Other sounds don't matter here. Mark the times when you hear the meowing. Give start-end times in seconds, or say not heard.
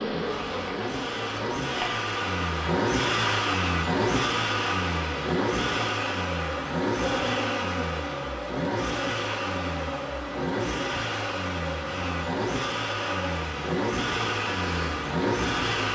not heard.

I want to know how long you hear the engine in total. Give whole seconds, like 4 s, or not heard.
16 s.